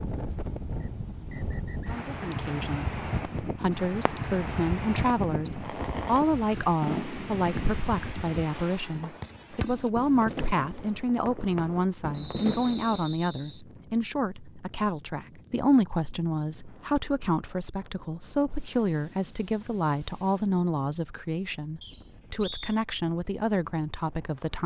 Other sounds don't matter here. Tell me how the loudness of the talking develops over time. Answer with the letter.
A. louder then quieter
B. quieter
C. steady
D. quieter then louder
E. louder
C.